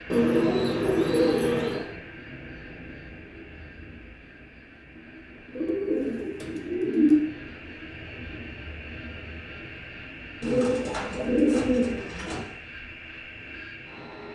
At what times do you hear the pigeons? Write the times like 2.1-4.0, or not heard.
0.1-1.9, 5.5-7.2, 10.4-12.4.